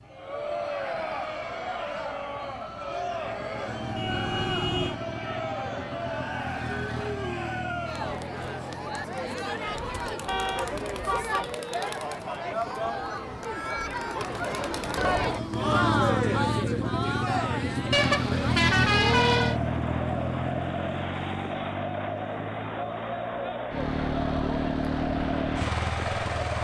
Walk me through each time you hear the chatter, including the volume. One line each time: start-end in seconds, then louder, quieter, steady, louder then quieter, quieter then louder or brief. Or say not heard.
0.0-26.5 steady.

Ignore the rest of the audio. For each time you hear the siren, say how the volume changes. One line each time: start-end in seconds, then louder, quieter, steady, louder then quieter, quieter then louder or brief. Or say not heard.
not heard.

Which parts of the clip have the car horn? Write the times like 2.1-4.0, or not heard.
4.0-5.0, 10.2-11.6, 17.9-19.6.